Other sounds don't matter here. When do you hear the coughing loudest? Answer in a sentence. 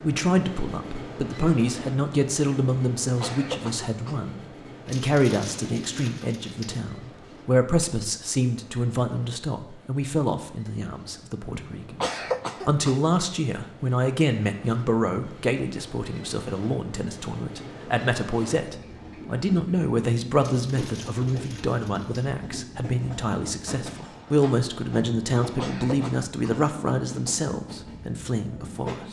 The loudest moment of the coughing is at 12 seconds.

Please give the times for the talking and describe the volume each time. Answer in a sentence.
The talking can be heard from 0.0 to 29.0 s, at a steady volume.